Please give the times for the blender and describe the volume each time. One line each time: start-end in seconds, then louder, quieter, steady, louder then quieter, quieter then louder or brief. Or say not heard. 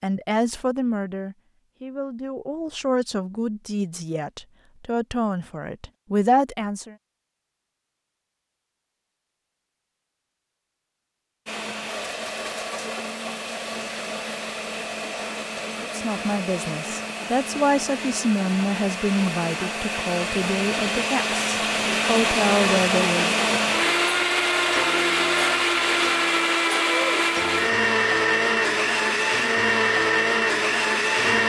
11.4-31.4 louder.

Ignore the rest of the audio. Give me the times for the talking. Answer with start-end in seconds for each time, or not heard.
0.0-7.0, 15.8-23.4.